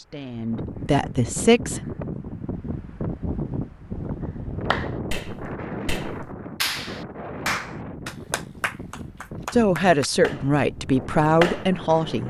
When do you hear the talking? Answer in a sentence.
You can hear the talking from 0.0 to 1.8 s and from 9.5 to 12.2 s.